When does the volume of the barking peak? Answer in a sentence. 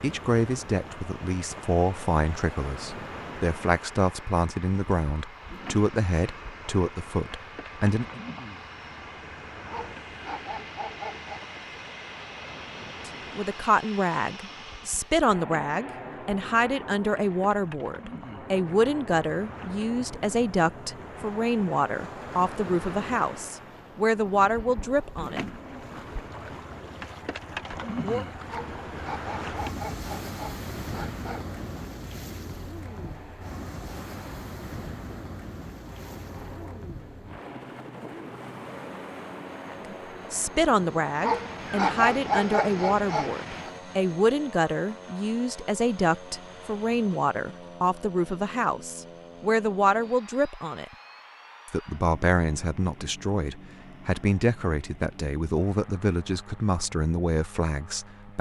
The loudest moment of the barking is at 42 seconds.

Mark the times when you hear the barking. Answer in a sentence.
You can hear the barking from 9.7 to 11.4 s, from 28.4 to 31.4 s and from 41.2 to 43.7 s.